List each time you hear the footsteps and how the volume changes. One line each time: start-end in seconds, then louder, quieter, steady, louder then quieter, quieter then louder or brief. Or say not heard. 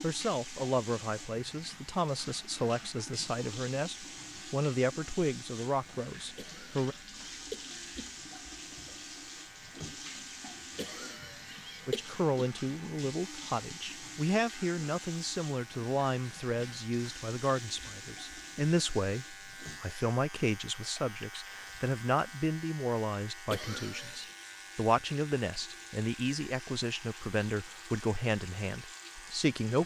not heard.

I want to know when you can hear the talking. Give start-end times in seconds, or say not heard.
0.0-7.0, 11.8-29.8.